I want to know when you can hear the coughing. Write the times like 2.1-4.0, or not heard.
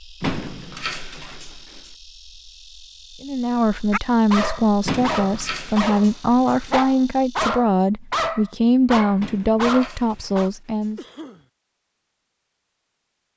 10.9-11.4.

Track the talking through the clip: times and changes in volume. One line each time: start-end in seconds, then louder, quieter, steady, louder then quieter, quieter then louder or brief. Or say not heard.
3.2-11.0 steady.